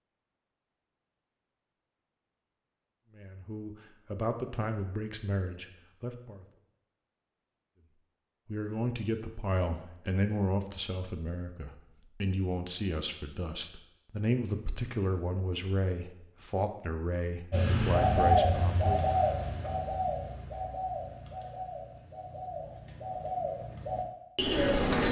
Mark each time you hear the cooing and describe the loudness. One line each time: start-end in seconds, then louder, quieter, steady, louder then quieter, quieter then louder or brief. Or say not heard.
17.5-25.0 quieter then louder.